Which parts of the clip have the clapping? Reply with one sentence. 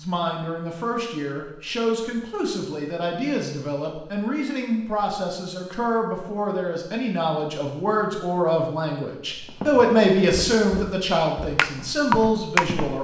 The clapping can be heard from 11.6 to 12.7 s.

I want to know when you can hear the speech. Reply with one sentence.
You can hear the speech from 0.0 to 12.9 s.